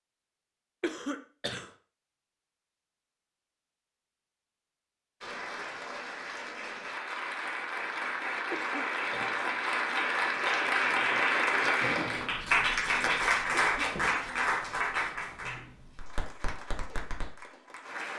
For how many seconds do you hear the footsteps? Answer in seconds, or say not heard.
not heard.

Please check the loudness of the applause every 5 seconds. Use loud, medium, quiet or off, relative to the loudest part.
off, medium, loud, quiet.